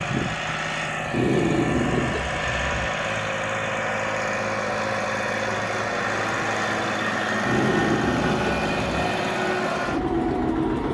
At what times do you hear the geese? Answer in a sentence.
The geese can't be heard in this clip.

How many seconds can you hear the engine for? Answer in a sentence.
You can hear the engine for 11 seconds altogether.